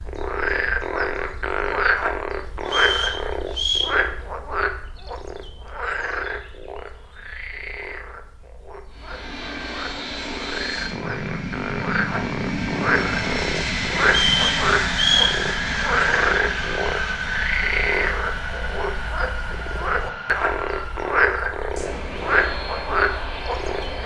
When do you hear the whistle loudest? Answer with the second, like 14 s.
15 s.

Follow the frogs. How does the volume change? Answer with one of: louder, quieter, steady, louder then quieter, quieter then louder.
quieter then louder.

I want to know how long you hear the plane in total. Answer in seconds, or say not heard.
15 s.